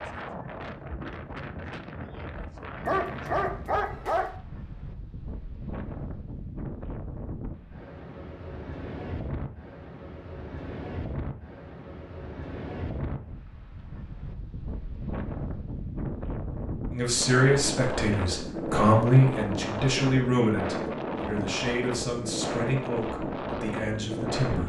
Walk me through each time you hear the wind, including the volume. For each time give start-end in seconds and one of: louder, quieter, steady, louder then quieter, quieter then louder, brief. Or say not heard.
0.0-24.6 louder.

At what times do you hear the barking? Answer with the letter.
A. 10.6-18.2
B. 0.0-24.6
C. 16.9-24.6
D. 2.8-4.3
D.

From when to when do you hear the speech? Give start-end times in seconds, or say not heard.
16.9-24.6.